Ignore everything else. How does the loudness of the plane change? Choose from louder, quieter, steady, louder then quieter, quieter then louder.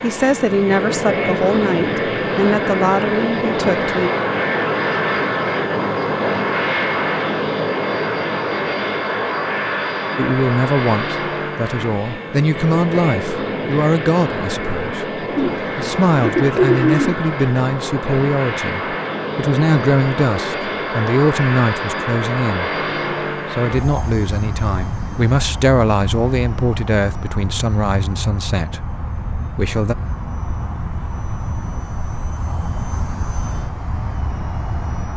quieter.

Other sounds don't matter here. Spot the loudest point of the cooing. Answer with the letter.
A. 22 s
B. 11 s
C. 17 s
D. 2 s
C.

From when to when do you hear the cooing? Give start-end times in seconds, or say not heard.
15.3-17.2.